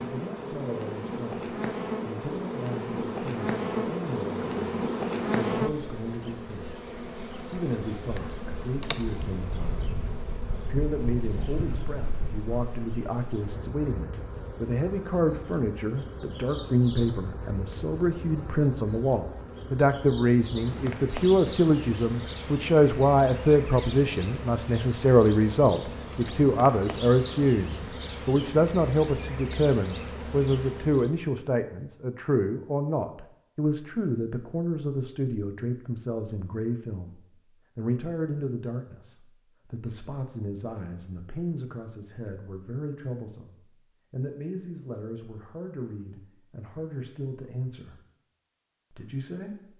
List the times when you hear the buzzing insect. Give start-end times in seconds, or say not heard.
0.0-31.2.